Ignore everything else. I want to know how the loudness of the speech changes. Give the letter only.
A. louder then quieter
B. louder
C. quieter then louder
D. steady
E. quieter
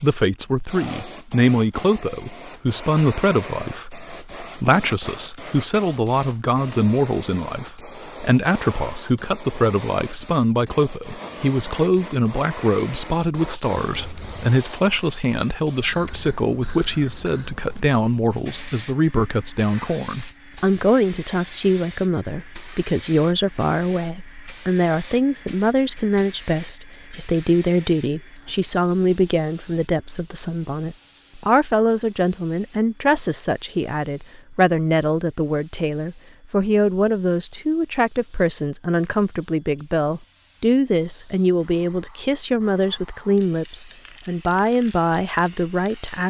D.